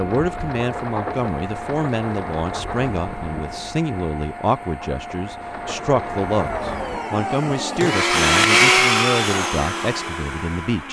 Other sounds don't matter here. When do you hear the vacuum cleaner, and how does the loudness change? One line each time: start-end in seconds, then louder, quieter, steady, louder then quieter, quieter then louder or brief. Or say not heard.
0.0-10.8 louder.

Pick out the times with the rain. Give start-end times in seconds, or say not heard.
0.0-7.0.